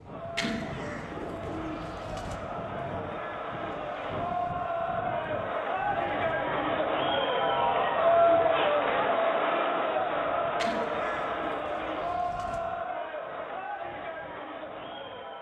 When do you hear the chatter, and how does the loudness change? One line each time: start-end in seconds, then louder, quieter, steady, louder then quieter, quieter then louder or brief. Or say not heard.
0.0-15.3 louder then quieter.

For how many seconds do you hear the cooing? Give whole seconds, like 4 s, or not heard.
4 s.